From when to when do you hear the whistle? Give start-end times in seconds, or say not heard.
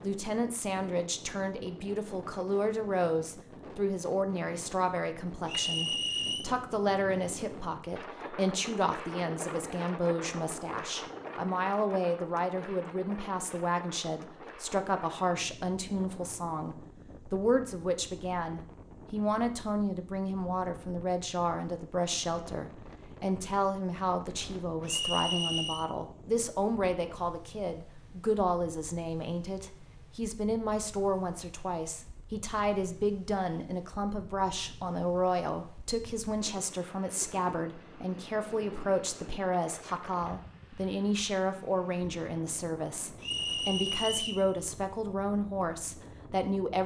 5.5-6.5, 24.9-25.9, 43.2-44.5.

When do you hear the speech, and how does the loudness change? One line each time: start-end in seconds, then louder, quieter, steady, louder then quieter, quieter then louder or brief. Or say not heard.
0.0-46.8 steady.